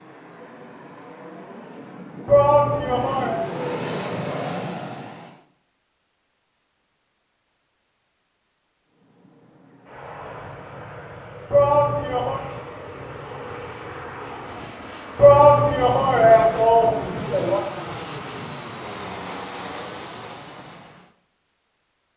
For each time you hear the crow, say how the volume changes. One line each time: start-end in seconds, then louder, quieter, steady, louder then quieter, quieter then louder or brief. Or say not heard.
not heard.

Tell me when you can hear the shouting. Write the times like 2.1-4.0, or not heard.
2.2-3.4, 11.5-12.4, 15.2-17.6.